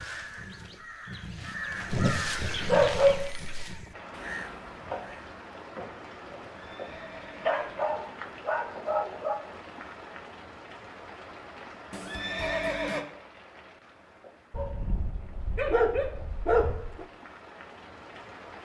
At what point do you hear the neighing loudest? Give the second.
13 s.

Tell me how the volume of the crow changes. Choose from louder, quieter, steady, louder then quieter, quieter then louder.
louder then quieter.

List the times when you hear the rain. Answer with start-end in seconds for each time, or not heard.
3.9-18.6.